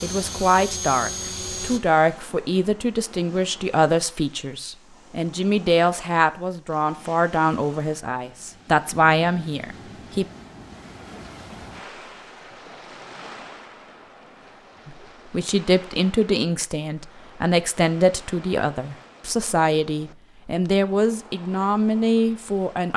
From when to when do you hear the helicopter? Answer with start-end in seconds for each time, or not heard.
0.0-1.8.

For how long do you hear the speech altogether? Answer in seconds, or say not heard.
18 s.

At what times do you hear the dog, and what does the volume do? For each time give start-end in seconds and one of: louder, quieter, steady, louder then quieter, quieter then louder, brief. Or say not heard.
not heard.